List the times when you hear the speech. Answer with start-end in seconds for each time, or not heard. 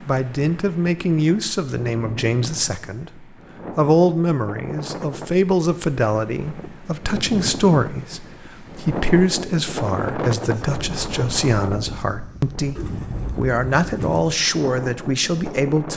0.1-15.9.